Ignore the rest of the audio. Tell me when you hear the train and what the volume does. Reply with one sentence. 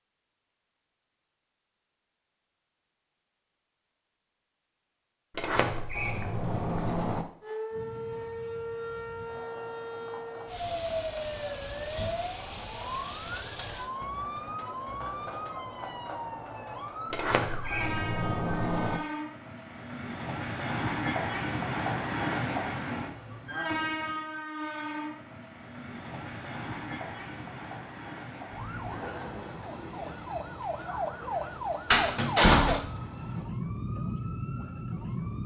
You can hear the train from 7.7 to 33.5 s, getting louder then quieter.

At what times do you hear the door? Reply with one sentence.
The door can be heard from 5.3 to 7.2 s, from 17.1 to 19.0 s and from 31.9 to 32.8 s.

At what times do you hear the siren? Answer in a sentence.
The siren can be heard from 7.4 to 17.8 s and from 28.5 to 35.4 s.